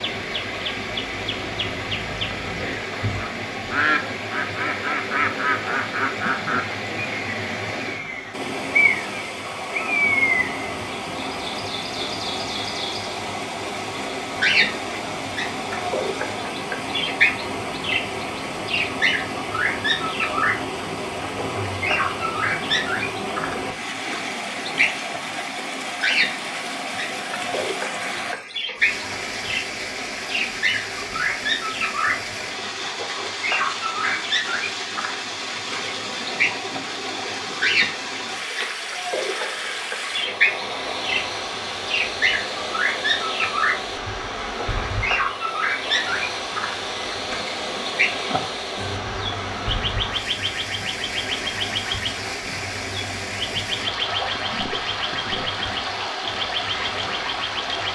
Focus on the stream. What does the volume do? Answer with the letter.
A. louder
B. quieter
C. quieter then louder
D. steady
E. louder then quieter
D.